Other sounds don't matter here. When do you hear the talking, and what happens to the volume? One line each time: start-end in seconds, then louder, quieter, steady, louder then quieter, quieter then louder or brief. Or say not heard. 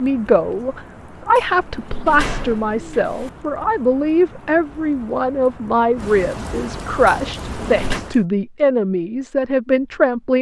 0.0-10.3 steady.